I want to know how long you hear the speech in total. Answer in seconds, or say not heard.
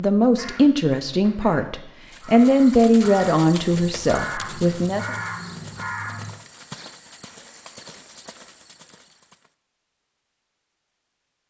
5 s.